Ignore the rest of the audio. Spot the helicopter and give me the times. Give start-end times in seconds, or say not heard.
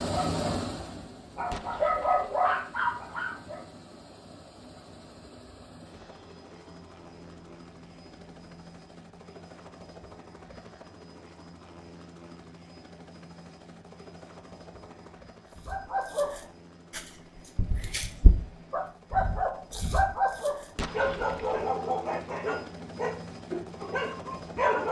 0.0-24.8.